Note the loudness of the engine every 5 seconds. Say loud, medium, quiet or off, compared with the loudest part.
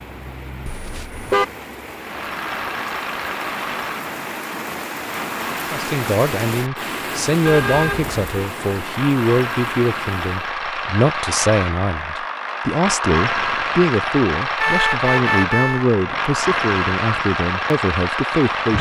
medium, medium, loud, loud.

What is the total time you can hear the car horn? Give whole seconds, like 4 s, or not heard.
3 s.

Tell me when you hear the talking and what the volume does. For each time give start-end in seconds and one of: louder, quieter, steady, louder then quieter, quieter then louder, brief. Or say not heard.
5.7-18.7 steady.